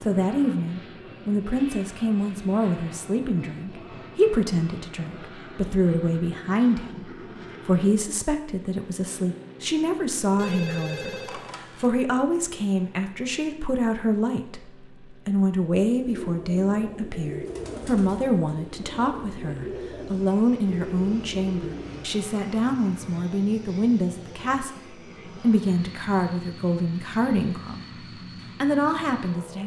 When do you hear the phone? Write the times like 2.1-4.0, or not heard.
10.3-11.9.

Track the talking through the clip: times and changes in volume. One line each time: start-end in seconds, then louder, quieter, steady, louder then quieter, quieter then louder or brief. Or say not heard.
0.0-27.9 steady
28.6-29.6 brief.